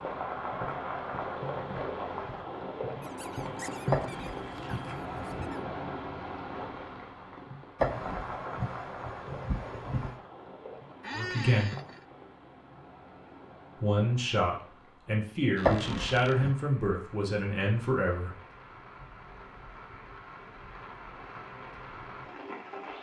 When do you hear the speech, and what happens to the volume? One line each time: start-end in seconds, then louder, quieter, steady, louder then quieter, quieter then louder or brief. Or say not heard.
11.2-11.7 brief
13.8-18.4 steady.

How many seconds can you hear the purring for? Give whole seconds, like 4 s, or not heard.
not heard.